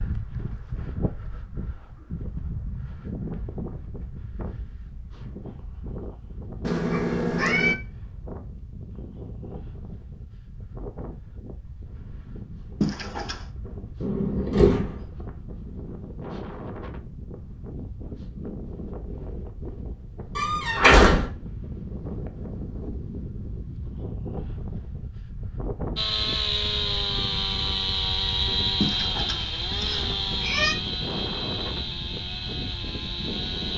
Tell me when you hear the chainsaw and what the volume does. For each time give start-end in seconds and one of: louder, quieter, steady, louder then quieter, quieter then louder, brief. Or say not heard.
25.9-33.7 quieter.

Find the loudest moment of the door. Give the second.
21 s.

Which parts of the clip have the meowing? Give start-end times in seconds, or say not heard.
6.6-7.8, 12.8-13.4, 28.8-30.8.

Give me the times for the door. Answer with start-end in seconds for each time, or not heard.
14.0-15.1, 20.4-21.2.